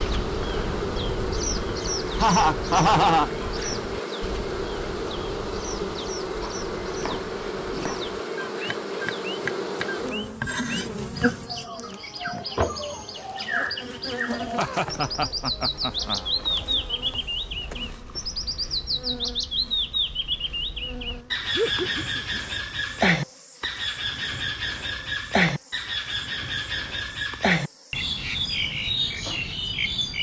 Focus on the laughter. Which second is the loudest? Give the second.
3 s.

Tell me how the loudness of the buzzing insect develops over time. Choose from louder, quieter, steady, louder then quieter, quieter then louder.
quieter.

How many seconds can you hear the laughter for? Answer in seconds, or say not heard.
4 s.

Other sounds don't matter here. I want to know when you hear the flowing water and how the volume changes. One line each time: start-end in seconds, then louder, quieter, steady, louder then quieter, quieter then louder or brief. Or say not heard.
not heard.